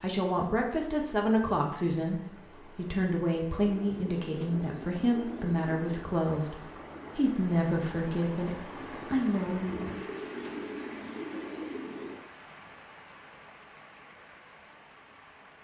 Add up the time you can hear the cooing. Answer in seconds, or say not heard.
5 s.